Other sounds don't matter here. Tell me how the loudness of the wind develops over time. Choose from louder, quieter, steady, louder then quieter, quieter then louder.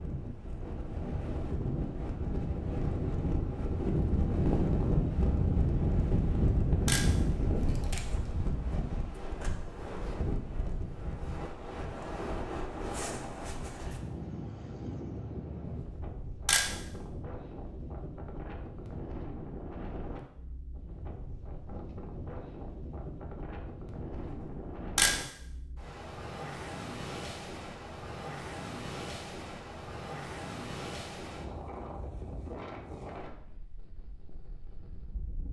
quieter.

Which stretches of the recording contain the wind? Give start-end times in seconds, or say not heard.
0.0-35.4.